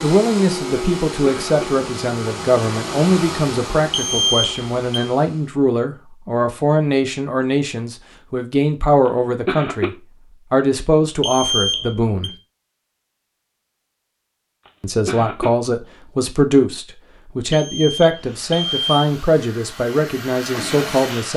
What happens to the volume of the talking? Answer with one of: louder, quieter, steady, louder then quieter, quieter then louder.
steady.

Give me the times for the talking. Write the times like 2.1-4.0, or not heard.
0.0-12.3, 14.8-21.3.